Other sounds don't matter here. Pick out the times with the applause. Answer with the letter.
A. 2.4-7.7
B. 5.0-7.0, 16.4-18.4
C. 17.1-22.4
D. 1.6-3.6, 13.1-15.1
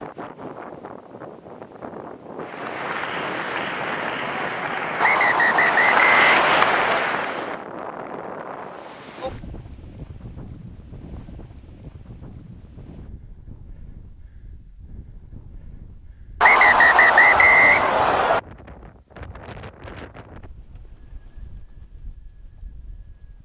A.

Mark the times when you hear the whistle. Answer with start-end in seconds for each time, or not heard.
5.0-7.0, 16.4-18.4.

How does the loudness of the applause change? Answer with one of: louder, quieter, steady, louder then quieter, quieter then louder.
louder.